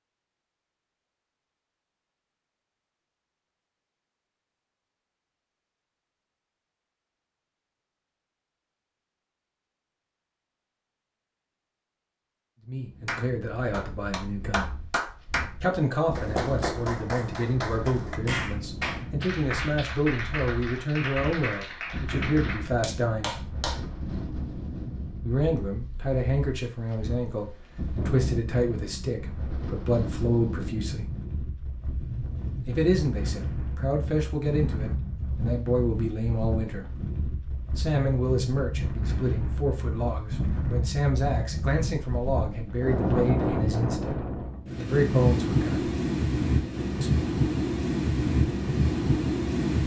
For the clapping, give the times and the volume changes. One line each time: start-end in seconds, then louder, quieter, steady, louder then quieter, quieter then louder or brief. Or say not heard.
13.1-15.5 brief
16.1-23.8 steady.